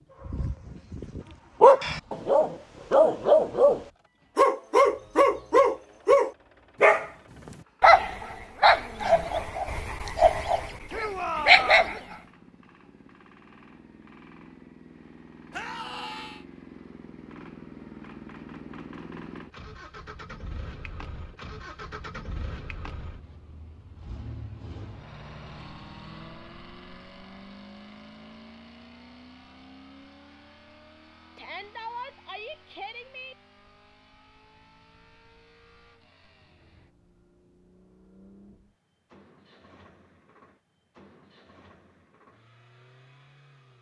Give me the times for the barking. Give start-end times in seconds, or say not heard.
0.2-7.1, 7.8-12.2.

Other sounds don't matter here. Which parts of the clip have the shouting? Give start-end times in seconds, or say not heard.
10.9-11.9, 15.5-16.4, 31.4-33.4.